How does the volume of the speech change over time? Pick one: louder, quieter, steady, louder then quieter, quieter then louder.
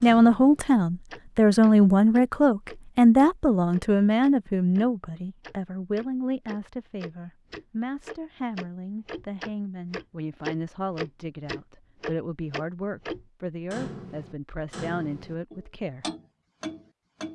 quieter.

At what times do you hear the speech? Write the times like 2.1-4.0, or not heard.
0.0-16.1.